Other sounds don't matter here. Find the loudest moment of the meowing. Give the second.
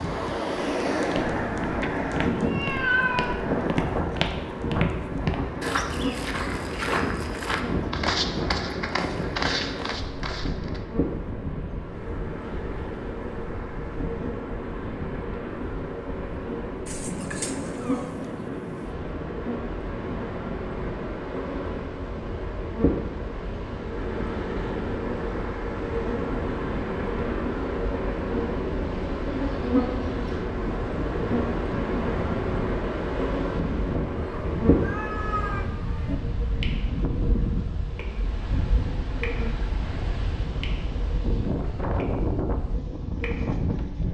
3 s.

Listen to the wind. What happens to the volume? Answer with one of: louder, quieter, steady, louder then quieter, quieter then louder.
quieter then louder.